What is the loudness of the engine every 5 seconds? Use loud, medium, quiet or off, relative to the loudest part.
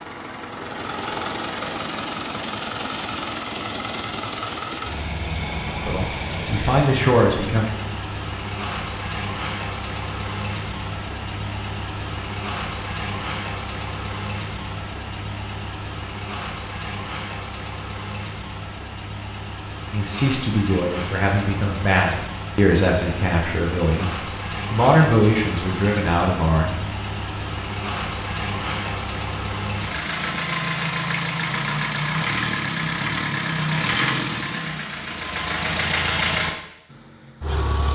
medium, medium, medium, medium, medium, medium, loud, loud.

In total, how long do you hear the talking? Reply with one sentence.
The talking can be heard for 8 seconds in total.